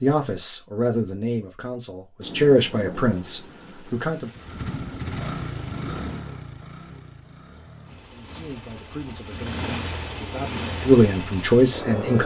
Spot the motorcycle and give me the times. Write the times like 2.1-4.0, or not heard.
4.3-12.2.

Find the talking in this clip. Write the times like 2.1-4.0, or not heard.
0.0-4.3, 8.1-12.2.